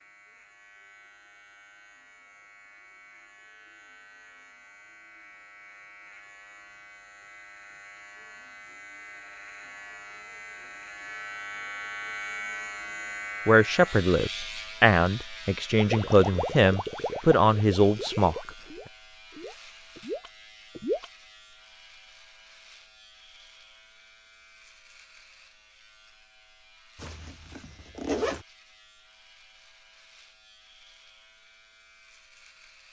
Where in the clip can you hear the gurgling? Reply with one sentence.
You can hear the gurgling from 15.8 to 21.1 s.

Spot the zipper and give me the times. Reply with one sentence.
The zipper can be heard from 26.9 to 28.4 s.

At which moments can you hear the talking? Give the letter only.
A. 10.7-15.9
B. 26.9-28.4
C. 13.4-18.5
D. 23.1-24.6
C.